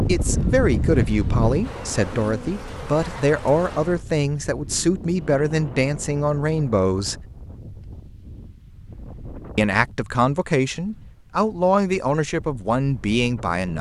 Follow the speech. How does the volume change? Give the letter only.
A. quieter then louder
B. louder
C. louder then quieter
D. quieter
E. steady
E.